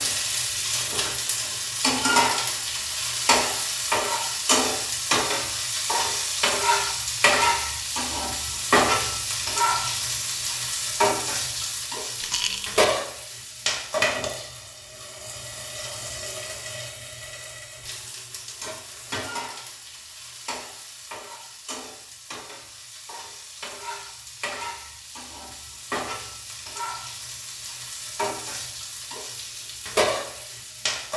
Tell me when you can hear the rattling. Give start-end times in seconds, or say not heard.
12.2-12.8.